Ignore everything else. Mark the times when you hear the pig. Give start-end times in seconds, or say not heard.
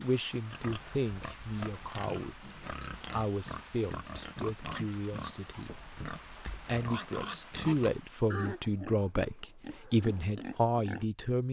0.5-11.1.